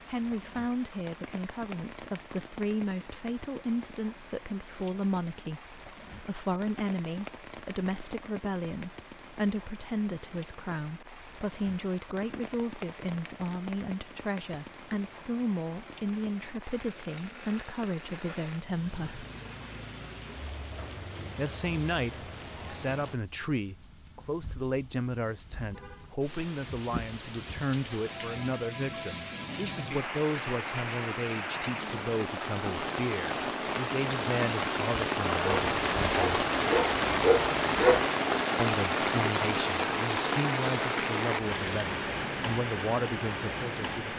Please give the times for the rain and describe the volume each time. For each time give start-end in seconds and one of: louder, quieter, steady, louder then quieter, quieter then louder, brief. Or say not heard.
0.0-44.1 louder.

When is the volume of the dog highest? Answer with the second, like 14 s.
38 s.